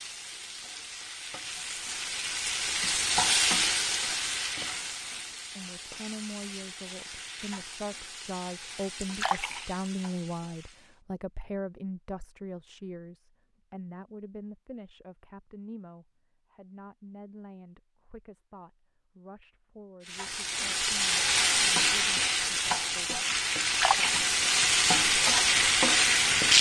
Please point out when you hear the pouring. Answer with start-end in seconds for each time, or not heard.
9.0-9.9, 23.6-24.2.